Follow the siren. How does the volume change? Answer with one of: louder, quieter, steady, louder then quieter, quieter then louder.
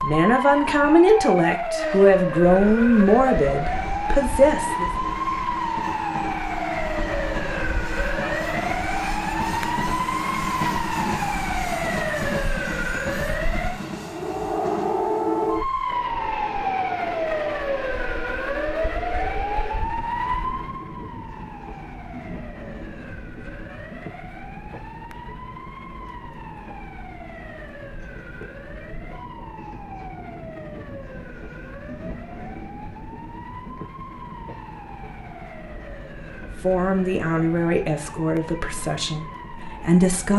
quieter.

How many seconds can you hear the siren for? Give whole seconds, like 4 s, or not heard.
40 s.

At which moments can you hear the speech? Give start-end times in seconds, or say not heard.
0.0-4.9, 36.6-40.3.